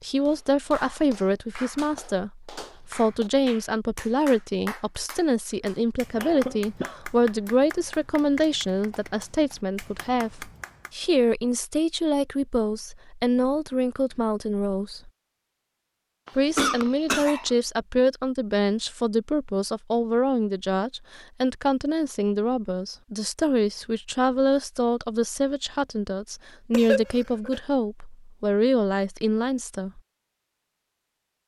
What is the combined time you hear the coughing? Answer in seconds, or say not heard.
3 s.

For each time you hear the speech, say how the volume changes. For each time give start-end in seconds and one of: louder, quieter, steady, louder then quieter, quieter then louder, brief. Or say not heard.
0.0-15.1 steady
16.4-30.0 steady.